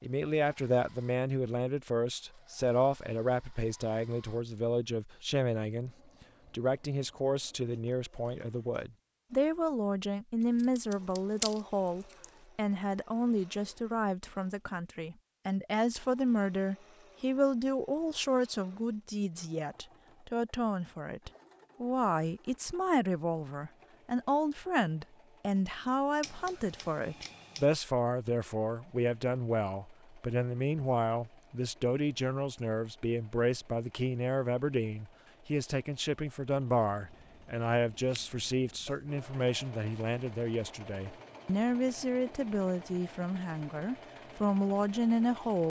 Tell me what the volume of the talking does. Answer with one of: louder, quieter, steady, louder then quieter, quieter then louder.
steady.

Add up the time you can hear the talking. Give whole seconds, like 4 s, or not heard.
45 s.